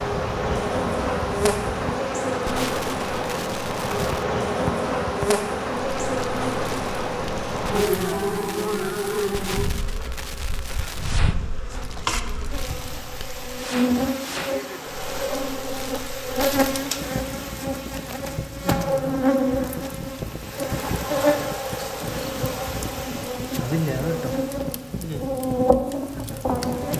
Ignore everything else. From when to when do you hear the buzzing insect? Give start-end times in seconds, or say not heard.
0.0-26.9.